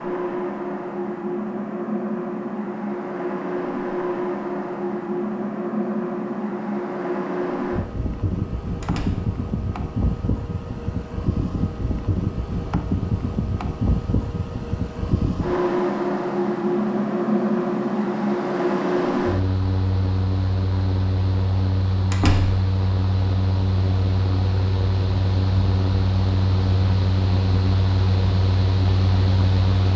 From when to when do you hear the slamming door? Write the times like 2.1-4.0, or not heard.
8.8-9.3, 22.1-22.6.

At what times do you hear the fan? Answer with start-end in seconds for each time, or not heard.
0.0-29.9.